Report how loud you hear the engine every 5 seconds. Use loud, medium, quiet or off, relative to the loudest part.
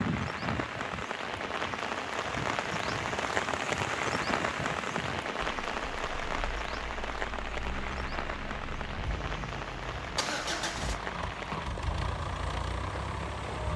loud, medium, loud.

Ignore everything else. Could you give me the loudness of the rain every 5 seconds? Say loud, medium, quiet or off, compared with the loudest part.
loud, loud, medium.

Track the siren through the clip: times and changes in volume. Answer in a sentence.
The siren can't be heard in this clip.